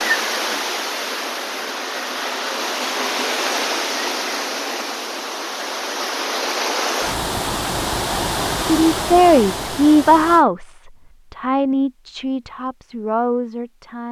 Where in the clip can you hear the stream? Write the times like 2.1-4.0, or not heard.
0.0-10.4.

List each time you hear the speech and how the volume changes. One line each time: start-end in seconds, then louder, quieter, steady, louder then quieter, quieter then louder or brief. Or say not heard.
8.7-14.0 quieter.